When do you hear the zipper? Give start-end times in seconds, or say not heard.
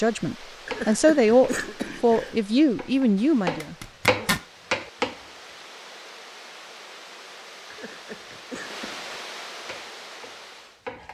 3.6-4.5.